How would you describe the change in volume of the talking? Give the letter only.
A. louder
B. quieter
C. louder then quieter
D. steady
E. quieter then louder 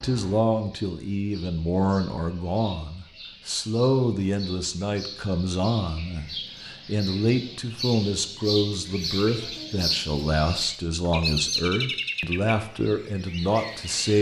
D.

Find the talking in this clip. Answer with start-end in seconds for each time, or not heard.
0.0-14.1.